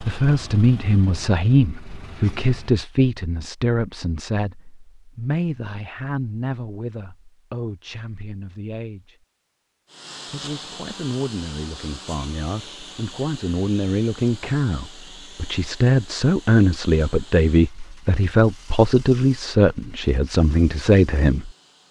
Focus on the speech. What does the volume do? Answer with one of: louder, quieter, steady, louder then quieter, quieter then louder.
quieter then louder.